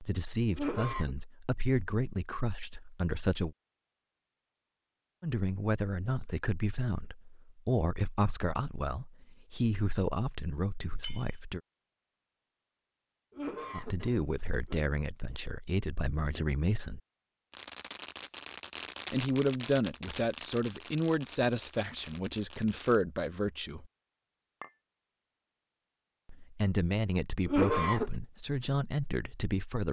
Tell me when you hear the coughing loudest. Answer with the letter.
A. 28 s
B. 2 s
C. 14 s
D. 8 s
A.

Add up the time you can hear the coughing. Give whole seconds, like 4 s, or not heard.
3 s.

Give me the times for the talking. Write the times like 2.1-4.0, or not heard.
0.0-3.5, 5.2-11.6, 13.7-17.0, 19.1-23.9, 26.2-29.8.